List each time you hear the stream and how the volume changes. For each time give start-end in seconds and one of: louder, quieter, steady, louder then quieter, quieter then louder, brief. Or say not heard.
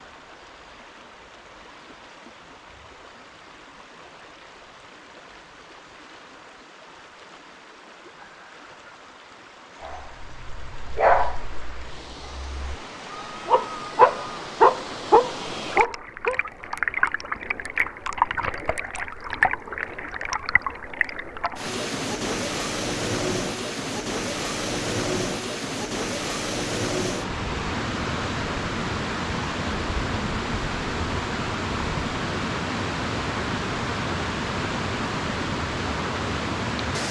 0.0-37.0 louder.